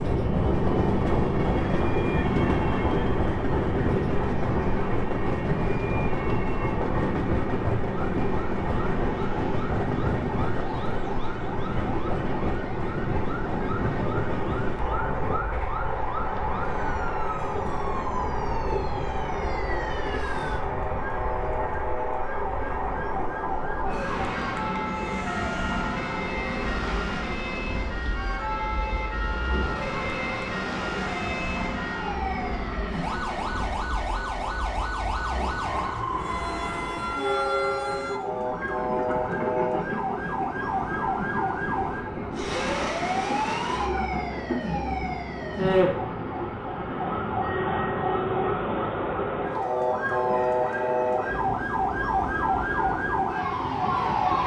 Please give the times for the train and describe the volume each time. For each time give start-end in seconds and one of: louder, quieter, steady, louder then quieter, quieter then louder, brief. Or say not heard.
0.0-54.4 quieter.